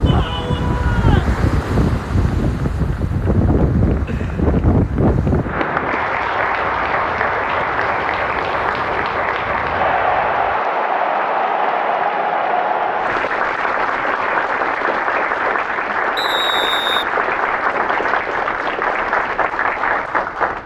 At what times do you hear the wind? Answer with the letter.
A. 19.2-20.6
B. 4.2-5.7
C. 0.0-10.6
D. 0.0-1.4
C.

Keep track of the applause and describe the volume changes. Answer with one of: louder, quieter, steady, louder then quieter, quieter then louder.
louder.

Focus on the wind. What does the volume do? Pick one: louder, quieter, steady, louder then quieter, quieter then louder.
quieter.